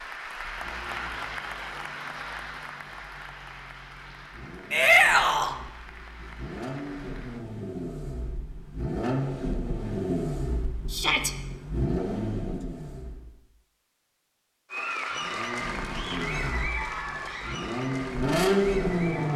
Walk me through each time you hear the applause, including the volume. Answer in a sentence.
The applause can be heard from 0.0 to 7.5 s, getting quieter; and from 14.7 to 19.3 s, getting quieter.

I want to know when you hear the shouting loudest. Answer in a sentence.
The loudest moment of the shouting is at 5 seconds.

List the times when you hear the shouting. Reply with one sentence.
You can hear the shouting from 4.7 to 5.5 s and from 10.9 to 11.3 s.